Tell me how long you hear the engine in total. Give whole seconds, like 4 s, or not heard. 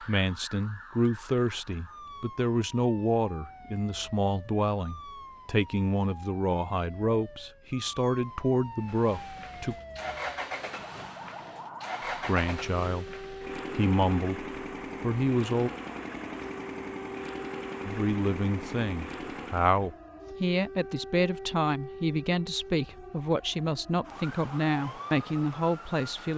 11 s.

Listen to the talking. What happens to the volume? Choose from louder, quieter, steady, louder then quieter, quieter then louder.
steady.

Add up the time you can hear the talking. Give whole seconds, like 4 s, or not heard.
22 s.